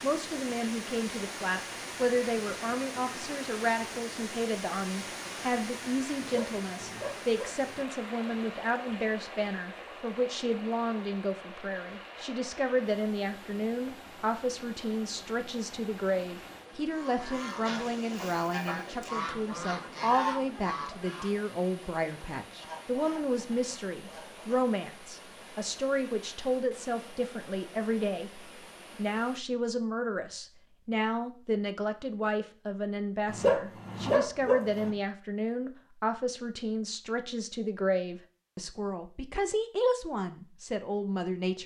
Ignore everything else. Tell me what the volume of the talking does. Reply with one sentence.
The loudness of the talking stays about the same.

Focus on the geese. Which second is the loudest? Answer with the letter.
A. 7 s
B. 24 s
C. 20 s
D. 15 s
C.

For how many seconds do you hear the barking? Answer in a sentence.
You can hear the barking for 3 seconds altogether.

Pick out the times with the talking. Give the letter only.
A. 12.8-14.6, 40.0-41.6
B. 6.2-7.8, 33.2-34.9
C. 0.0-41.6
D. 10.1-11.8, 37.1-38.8
C.